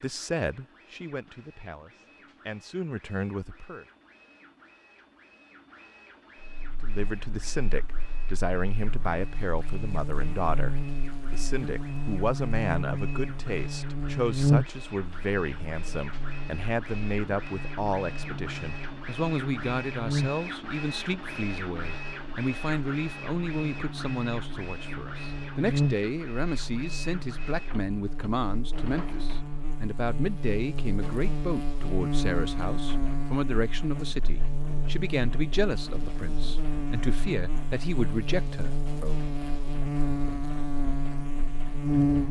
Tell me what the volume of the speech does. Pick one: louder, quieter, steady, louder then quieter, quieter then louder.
steady.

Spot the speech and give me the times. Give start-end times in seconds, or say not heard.
0.0-3.9, 6.8-39.2.